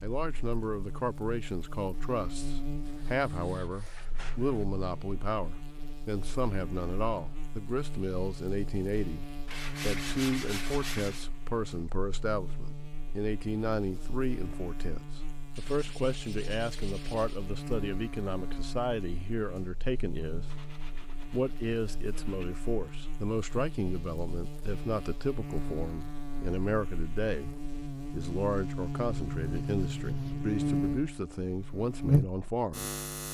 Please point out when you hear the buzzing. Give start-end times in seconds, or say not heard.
0.0-33.2.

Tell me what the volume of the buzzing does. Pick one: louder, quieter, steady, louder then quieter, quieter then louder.
louder.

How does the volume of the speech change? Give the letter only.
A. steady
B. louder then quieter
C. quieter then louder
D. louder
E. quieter
A.